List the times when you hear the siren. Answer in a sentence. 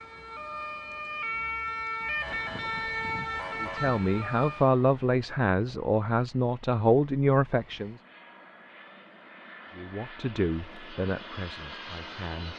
You can hear the siren from 0.0 to 4.7 s.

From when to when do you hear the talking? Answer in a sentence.
You can hear the talking from 3.6 to 8.0 s and from 9.8 to 12.5 s.